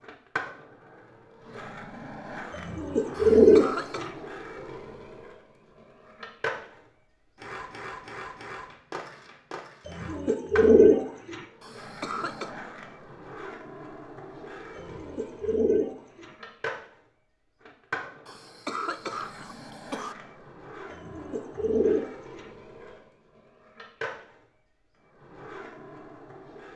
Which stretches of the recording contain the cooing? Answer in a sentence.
You can hear the cooing from 2.5 to 4.1 s, from 9.8 to 11.4 s, from 14.8 to 16.3 s and from 20.9 to 22.4 s.